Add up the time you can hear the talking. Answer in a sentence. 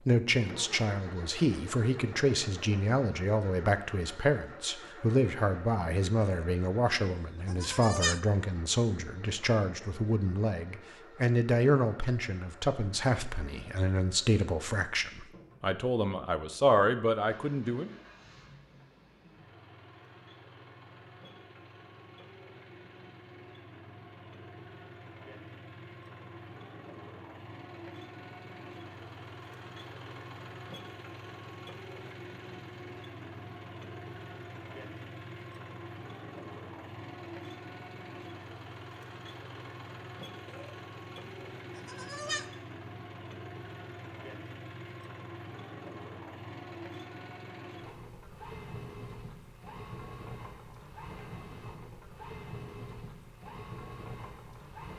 You can hear the talking for 18 seconds altogether.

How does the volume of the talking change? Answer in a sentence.
The volume of the talking stays about the same.